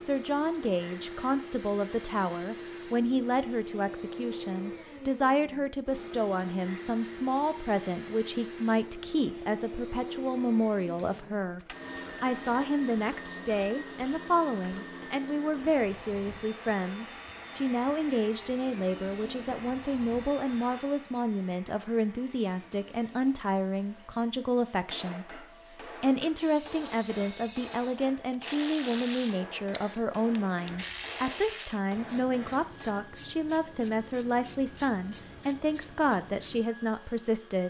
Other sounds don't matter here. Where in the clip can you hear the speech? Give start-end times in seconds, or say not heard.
0.0-11.6, 12.2-37.6.